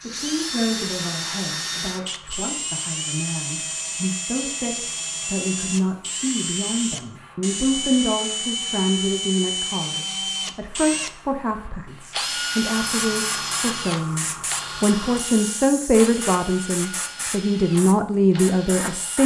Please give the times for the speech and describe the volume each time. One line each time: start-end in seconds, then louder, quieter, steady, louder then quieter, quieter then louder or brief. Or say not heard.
0.0-19.2 louder.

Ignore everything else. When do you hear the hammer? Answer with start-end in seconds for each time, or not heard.
not heard.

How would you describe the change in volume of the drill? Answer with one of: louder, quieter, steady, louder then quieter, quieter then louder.
quieter.